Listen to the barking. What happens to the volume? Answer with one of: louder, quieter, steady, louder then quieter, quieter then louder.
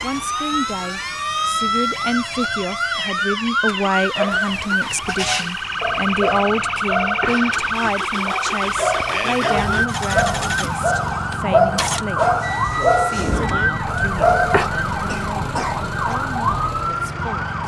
louder.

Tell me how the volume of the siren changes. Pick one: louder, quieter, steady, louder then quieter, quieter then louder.
steady.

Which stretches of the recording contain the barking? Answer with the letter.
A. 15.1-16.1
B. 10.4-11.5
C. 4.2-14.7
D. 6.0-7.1
C.